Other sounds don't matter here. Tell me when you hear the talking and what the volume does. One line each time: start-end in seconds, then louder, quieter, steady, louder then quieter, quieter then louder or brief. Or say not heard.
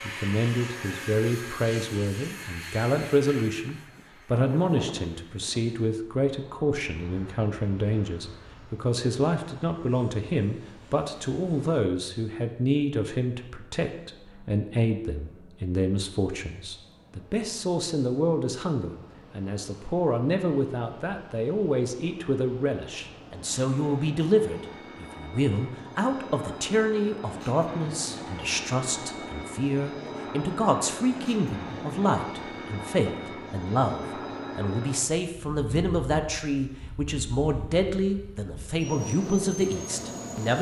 0.0-40.5 steady.